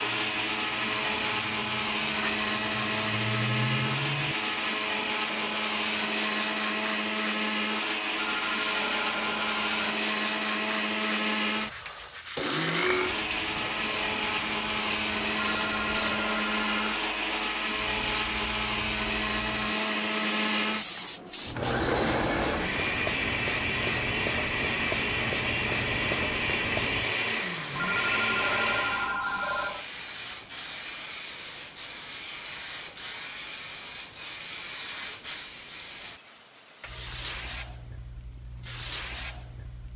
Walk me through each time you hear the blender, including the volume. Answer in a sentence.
The blender can be heard from 0.0 to 29.2 s, at a steady volume.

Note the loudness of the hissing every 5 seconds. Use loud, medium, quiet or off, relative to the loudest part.
loud, loud, loud, loud, loud, loud, loud, medium.